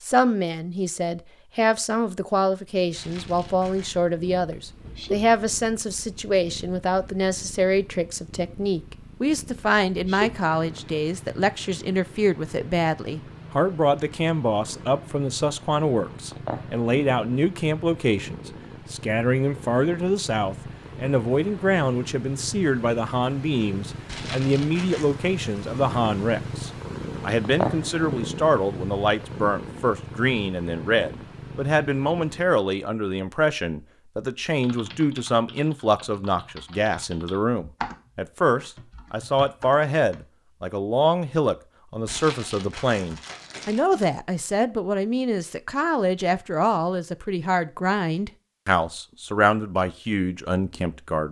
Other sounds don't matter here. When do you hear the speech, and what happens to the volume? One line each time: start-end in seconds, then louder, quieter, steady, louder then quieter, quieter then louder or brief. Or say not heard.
0.0-51.2 steady.